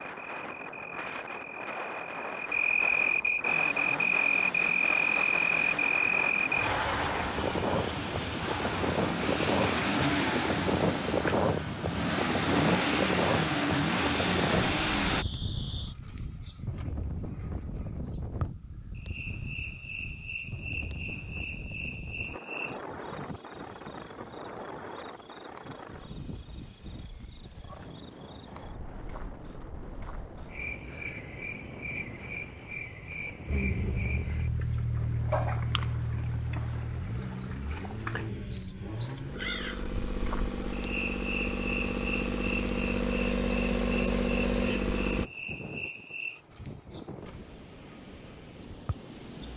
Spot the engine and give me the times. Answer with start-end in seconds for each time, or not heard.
3.5-15.2, 33.5-45.3.